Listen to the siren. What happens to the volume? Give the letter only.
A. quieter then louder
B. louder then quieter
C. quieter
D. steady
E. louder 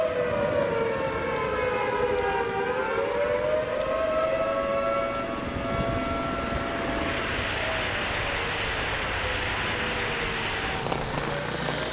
C.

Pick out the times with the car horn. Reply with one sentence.
You can't hear the car horn here.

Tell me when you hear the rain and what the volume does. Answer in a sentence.
The rain can be heard from 0.0 to 11.8 s, getting louder.